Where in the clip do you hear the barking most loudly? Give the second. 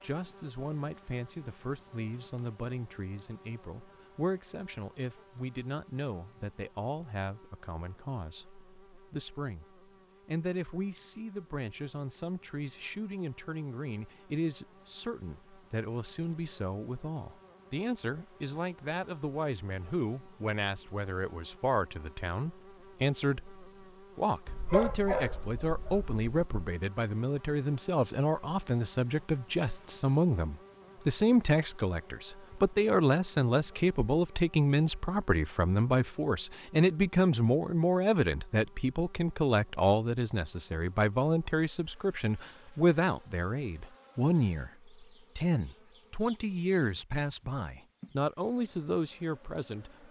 25 s.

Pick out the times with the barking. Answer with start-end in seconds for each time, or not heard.
24.4-26.2.